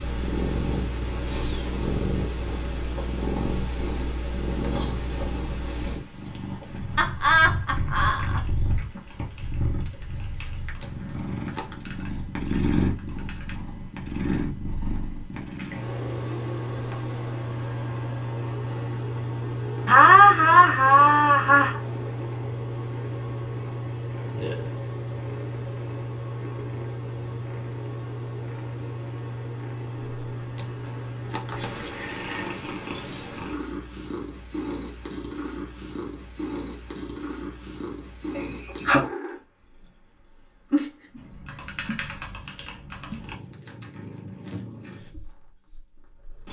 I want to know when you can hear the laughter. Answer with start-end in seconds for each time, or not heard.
7.0-8.4, 19.9-21.8, 38.3-39.0.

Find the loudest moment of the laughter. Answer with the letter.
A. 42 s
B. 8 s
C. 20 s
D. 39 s
C.